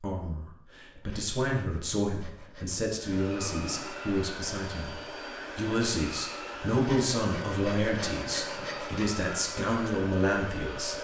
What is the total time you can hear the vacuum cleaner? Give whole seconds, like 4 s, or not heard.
8 s.